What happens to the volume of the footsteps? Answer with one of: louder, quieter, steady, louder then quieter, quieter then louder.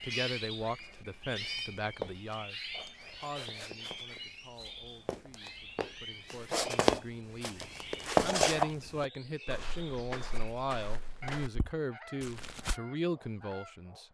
louder then quieter.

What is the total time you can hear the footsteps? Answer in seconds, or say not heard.
11 s.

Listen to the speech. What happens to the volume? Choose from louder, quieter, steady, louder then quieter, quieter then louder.
quieter then louder.